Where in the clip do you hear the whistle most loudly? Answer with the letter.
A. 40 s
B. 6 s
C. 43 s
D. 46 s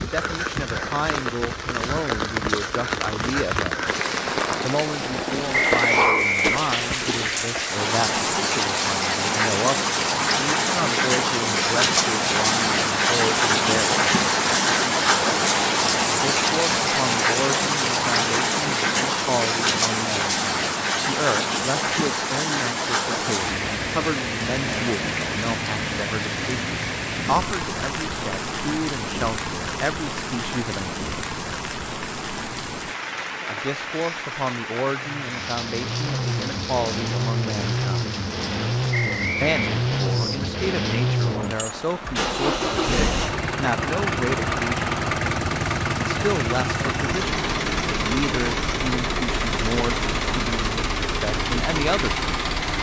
B.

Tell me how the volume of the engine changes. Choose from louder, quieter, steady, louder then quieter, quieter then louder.
steady.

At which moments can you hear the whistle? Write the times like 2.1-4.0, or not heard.
5.5-7.0, 38.9-39.7.